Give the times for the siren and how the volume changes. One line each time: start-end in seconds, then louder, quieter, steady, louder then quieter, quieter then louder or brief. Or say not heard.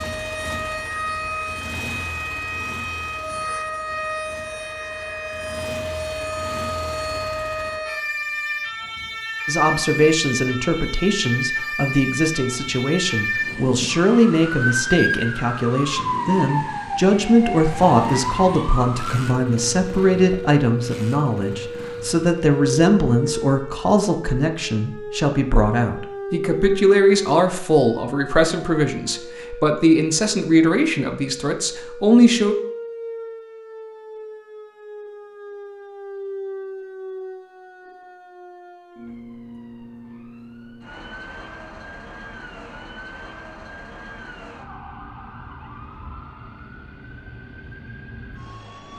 0.0-48.9 quieter.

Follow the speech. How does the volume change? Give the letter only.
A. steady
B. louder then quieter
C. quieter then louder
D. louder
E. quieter
A.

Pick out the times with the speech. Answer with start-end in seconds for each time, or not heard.
9.4-32.5.